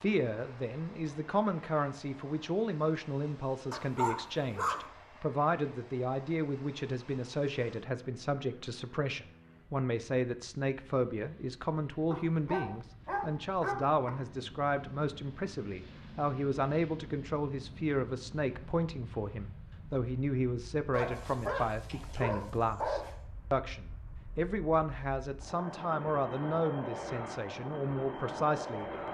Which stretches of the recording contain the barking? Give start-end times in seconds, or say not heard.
3.7-4.8, 12.1-14.1, 20.9-23.1.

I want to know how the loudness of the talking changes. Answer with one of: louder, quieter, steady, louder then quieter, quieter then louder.
steady.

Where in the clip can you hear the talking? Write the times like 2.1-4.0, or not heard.
0.0-28.9.